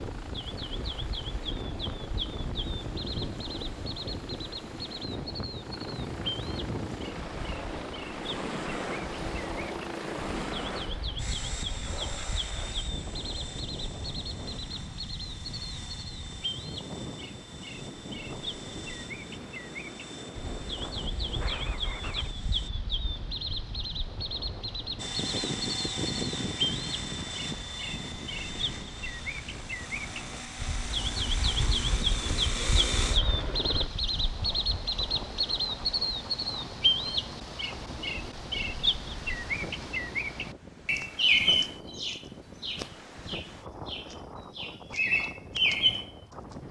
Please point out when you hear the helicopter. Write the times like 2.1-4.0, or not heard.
0.0-22.7, 24.9-33.9.